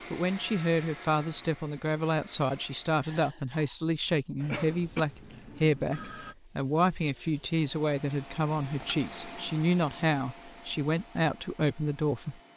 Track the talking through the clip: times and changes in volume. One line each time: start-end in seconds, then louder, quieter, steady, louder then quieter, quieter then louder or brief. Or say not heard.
0.1-12.3 steady.